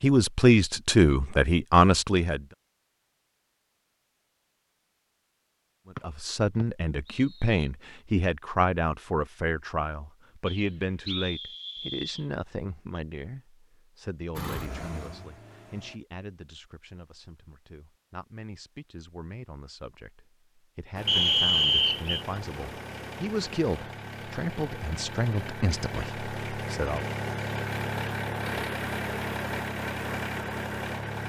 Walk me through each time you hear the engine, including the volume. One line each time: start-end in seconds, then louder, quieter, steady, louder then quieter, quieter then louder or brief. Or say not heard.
14.3-16.0 brief
20.9-31.2 louder.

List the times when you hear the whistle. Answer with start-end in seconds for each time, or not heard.
6.0-7.5, 10.4-12.2, 21.1-22.2.